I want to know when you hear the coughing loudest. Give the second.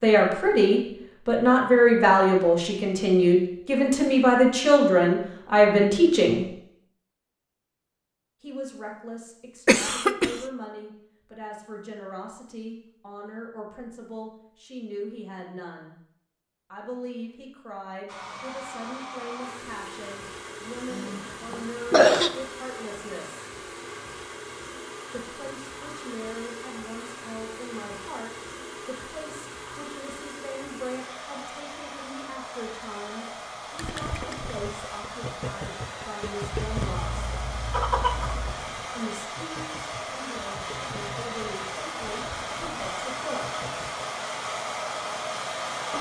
22 s.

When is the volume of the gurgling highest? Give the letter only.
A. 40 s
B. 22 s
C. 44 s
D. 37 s
D.